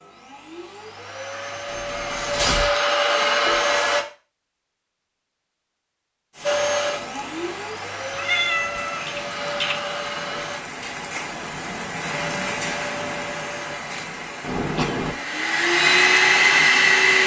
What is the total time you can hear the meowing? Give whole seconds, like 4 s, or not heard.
4 s.